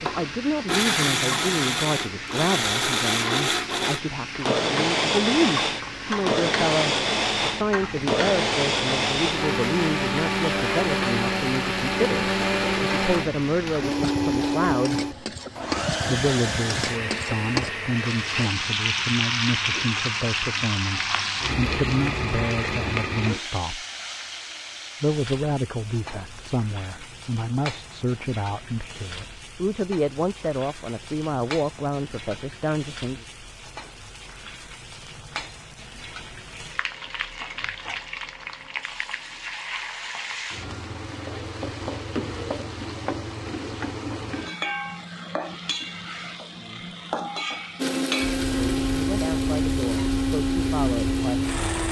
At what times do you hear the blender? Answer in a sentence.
The blender can be heard from 0.1 to 18.5 s and from 47.8 to 51.8 s.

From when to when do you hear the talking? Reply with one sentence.
The talking can be heard from 0.0 to 15.1 s, from 16.1 to 23.9 s, from 25.0 to 33.2 s, from 46.5 to 47.0 s and from 48.5 to 51.8 s.